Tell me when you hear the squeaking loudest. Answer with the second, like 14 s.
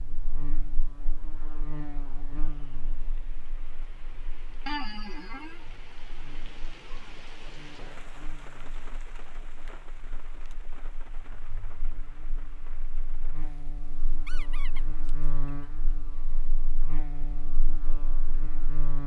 5 s.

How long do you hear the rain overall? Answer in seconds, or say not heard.
19 s.